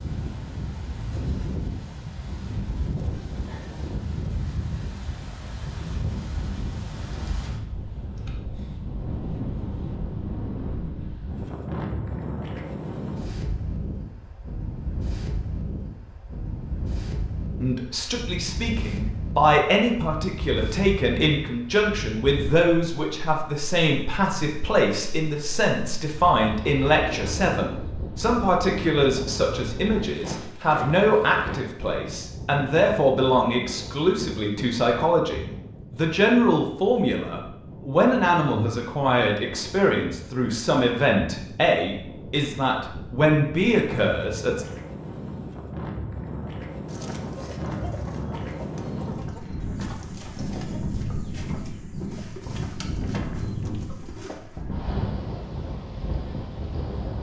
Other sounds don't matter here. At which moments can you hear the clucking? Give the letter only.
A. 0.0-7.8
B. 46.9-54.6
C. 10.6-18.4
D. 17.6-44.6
B.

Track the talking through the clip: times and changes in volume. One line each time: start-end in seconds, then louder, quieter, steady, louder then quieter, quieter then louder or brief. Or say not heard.
17.6-44.6 steady.